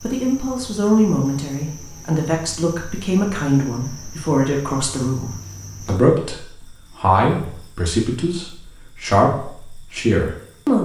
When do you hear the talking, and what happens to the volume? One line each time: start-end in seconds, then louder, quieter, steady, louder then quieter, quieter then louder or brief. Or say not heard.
0.0-10.7 steady.